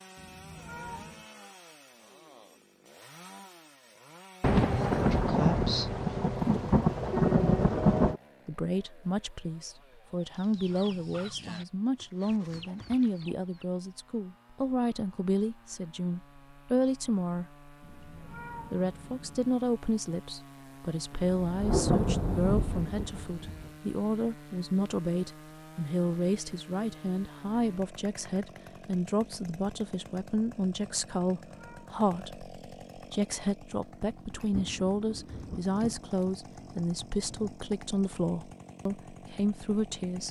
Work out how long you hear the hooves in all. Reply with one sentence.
The hooves can't be heard in this clip.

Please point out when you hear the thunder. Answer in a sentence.
The thunder can be heard from 4.4 to 8.2 s, from 21.3 to 23.7 s and from 34.4 to 37.6 s.